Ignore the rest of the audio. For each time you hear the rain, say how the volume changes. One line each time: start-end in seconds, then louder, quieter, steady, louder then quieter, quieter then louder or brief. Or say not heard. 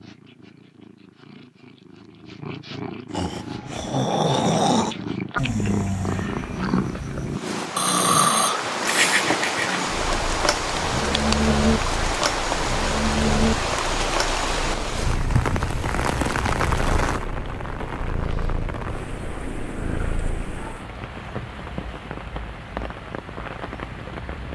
7.3-24.4 quieter.